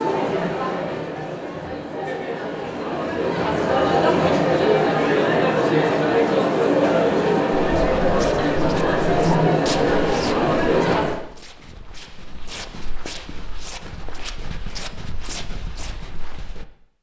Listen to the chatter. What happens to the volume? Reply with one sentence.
The volume of the chatter goes up.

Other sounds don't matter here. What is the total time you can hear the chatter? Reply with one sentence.
The chatter can be heard for 11 seconds in total.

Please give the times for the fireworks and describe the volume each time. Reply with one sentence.
You can't hear the fireworks here.